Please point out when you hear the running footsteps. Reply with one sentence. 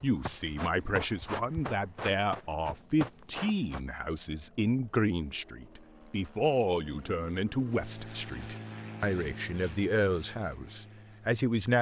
You can hear the running footsteps from 0.0 to 3.8 s.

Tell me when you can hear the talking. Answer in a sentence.
You can hear the talking from 0.0 to 11.7 s.